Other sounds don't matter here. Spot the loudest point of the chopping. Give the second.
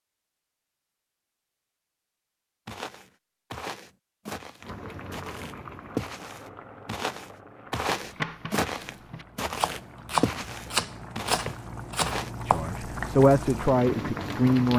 10 s.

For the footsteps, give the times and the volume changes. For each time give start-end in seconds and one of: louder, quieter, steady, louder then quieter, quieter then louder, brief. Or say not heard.
2.6-12.3 louder.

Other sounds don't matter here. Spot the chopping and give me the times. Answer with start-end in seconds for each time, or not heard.
8.1-12.7.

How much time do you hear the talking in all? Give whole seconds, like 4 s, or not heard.
2 s.